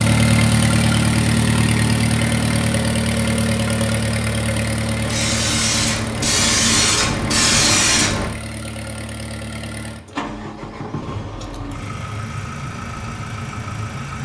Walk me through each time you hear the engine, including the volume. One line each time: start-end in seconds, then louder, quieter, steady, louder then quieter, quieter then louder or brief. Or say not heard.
0.0-14.2 quieter.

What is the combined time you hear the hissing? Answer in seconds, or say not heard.
3 s.